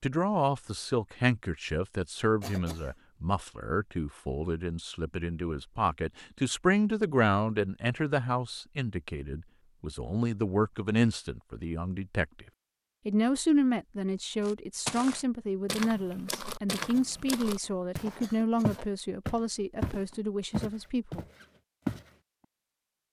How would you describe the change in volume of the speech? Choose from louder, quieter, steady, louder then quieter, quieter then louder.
steady.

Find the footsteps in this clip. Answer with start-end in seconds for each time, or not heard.
14.4-22.1.